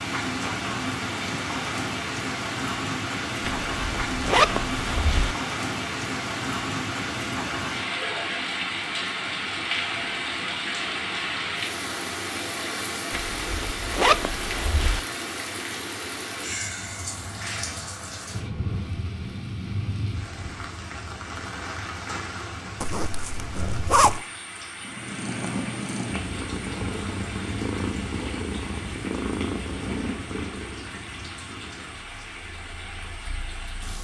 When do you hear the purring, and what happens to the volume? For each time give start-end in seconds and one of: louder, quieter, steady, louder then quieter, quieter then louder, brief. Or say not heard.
24.8-33.9 quieter.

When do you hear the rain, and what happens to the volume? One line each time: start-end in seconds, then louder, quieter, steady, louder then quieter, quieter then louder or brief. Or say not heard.
0.0-34.0 quieter.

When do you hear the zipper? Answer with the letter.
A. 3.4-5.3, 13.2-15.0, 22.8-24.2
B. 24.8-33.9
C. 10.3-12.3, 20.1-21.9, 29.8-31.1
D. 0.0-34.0
A.